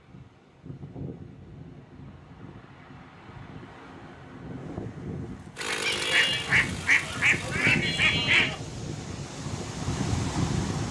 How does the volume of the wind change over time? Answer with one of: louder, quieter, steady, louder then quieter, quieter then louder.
louder.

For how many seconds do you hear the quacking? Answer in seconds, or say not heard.
3 s.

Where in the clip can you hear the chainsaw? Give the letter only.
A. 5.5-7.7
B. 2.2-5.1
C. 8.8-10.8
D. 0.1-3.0
A.